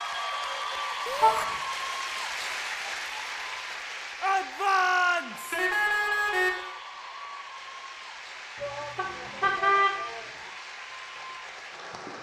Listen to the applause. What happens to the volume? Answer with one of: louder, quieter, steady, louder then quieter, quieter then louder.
quieter.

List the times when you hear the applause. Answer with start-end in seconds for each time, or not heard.
0.0-12.1.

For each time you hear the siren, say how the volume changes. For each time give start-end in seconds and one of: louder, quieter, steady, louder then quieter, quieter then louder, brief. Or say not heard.
not heard.